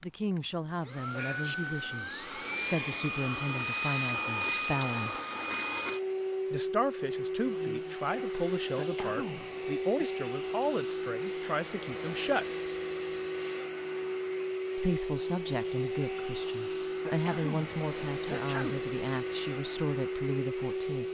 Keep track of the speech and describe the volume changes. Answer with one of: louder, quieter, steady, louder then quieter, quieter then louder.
steady.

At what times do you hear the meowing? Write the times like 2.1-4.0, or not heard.
not heard.